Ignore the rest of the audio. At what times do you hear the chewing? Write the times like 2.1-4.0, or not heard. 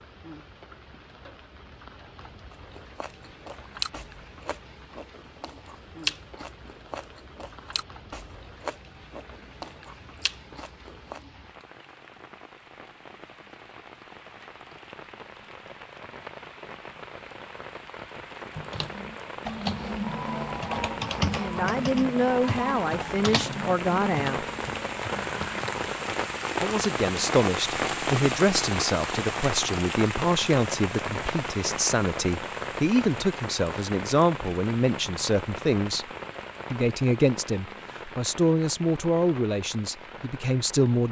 2.5-11.2.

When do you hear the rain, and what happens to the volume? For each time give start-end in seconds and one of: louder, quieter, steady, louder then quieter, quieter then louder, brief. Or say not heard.
0.0-41.0 louder then quieter.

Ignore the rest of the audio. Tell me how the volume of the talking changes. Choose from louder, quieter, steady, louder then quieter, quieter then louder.
steady.